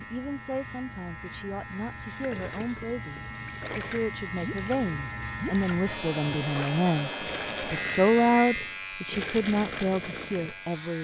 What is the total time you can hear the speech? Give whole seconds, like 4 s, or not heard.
11 s.